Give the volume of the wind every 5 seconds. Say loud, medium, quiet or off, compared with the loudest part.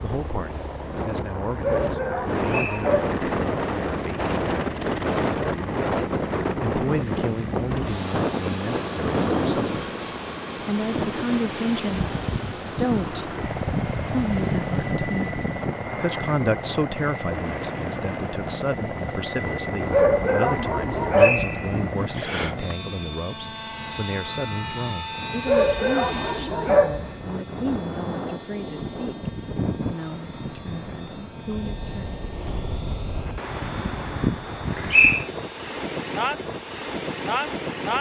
loud, loud, loud, medium, medium, medium, medium, loud.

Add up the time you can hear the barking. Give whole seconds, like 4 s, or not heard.
5 s.